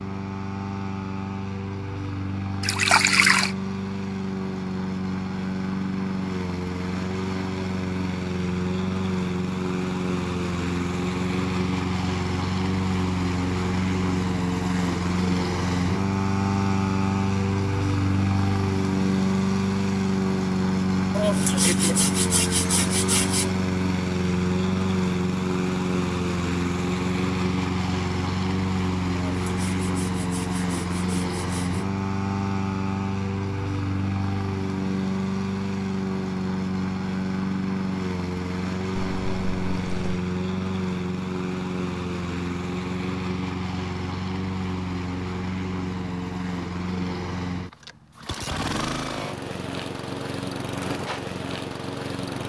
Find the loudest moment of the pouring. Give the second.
3 s.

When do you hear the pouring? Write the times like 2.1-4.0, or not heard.
2.6-3.5, 39.0-40.2.